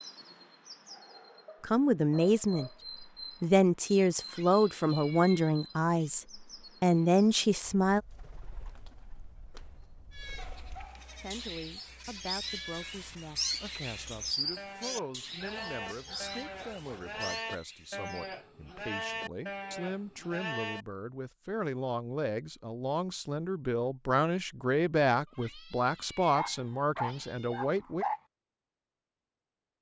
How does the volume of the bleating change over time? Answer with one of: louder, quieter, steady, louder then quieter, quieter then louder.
louder.